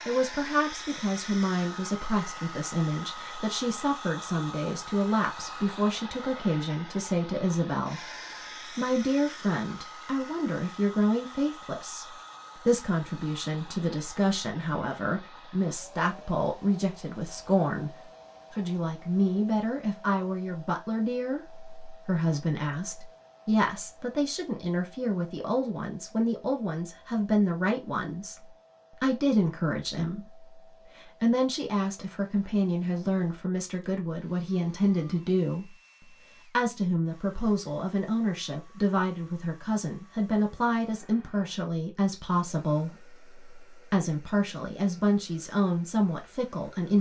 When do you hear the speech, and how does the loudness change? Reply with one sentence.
You can hear the speech from 0.1 to 46.9 s, at a steady volume.